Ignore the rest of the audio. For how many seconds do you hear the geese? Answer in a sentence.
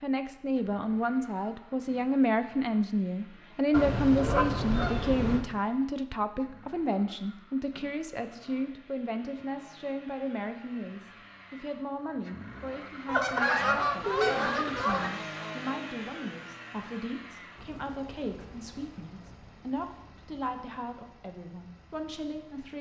The geese can be heard for 4 seconds in total.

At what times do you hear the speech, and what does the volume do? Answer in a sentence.
You can hear the speech from 0.0 to 22.7 s, getting quieter.